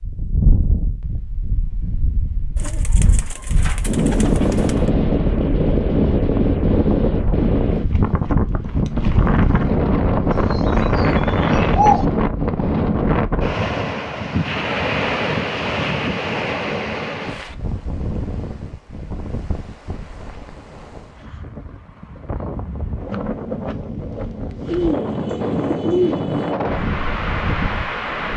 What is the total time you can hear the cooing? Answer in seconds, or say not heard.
6 s.